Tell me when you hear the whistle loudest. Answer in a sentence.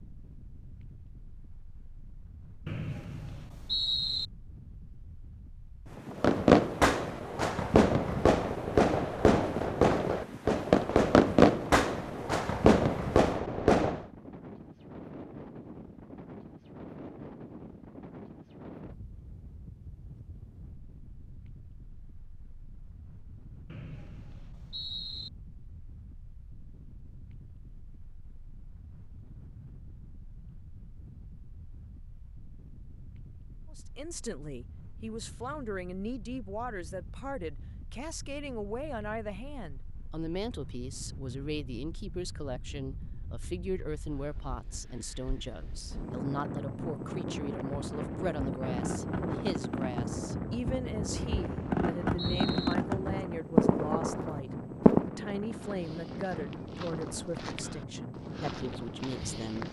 The loudest moment of the whistle is at 4 seconds.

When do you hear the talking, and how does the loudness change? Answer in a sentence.
You can hear the talking from 33.7 to 59.6 s, at a steady volume.